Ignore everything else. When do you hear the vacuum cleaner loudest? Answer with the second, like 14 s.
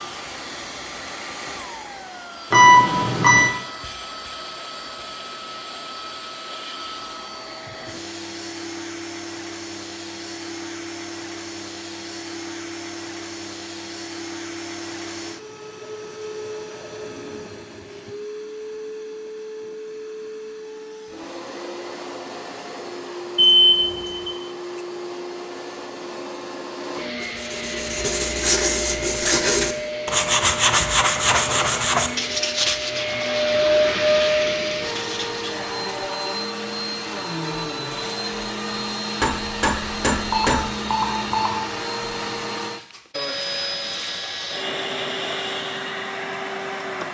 34 s.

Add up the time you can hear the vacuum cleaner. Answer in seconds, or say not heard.
47 s.